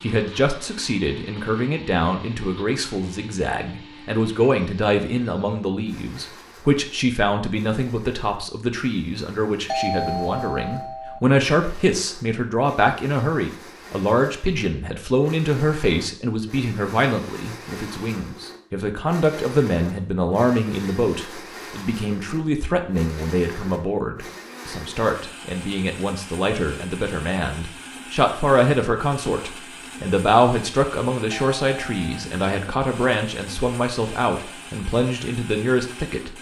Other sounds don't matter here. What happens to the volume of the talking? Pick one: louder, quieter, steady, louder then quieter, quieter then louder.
steady.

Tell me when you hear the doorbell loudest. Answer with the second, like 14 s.
10 s.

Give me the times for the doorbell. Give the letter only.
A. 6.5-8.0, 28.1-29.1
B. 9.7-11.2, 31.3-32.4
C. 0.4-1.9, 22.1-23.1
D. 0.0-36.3
B.